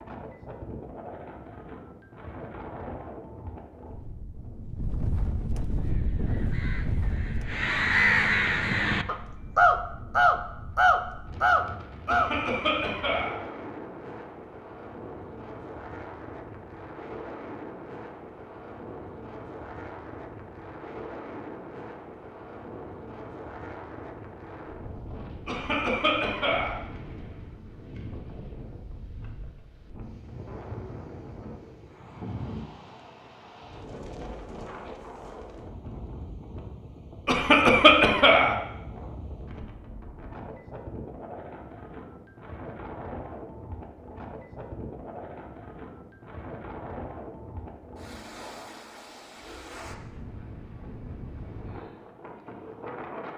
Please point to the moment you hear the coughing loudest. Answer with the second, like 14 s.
38 s.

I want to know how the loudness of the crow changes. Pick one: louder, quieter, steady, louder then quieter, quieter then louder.
louder.